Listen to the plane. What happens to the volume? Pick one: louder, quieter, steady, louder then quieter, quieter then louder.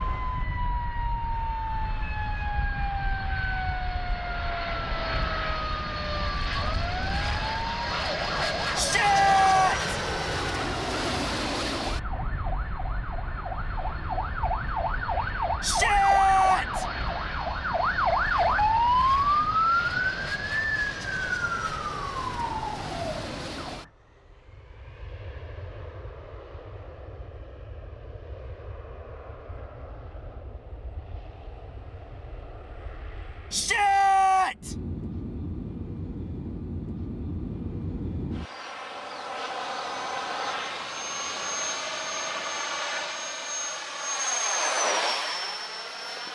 quieter then louder.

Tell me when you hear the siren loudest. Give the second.
19 s.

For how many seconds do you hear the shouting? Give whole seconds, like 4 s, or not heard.
4 s.